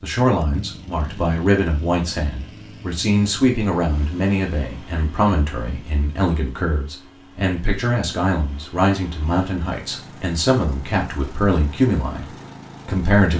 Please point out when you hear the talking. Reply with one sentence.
You can hear the talking from 0.0 to 13.3 s.